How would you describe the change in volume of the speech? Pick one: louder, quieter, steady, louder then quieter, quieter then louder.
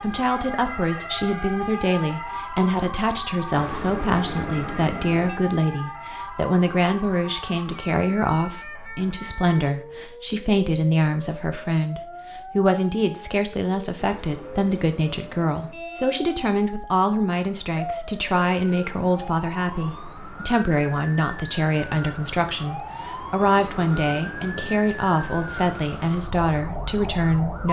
steady.